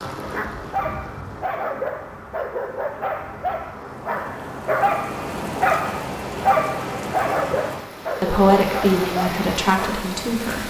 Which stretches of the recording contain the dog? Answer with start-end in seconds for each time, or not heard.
0.2-10.2.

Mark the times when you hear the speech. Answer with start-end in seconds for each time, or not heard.
8.2-10.6.